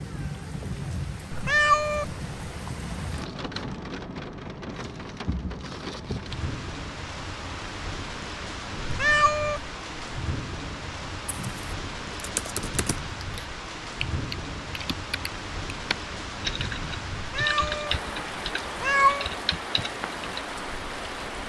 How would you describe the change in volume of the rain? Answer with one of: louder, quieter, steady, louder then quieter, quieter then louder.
steady.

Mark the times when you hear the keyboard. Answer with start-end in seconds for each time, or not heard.
11.2-20.4.